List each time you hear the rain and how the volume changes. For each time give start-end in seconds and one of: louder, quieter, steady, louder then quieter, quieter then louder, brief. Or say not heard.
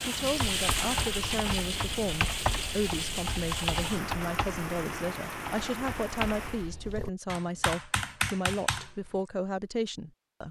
0.0-6.7 quieter.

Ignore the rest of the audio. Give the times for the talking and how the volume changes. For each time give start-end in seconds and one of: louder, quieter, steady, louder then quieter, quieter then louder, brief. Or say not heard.
0.0-10.4 steady.